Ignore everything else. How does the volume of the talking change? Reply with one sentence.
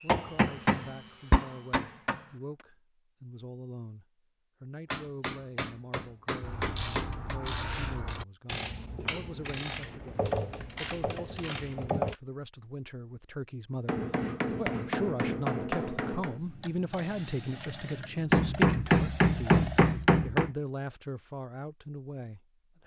The volume of the talking goes up.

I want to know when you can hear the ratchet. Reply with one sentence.
You can hear the ratchet from 6.4 to 12.2 s.